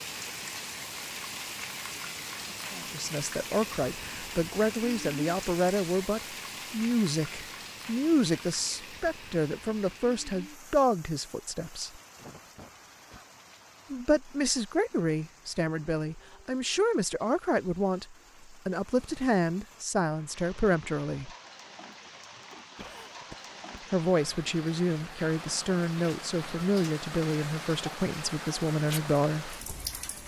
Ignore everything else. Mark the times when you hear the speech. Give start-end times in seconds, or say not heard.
2.8-12.0, 13.9-21.3, 23.9-29.6.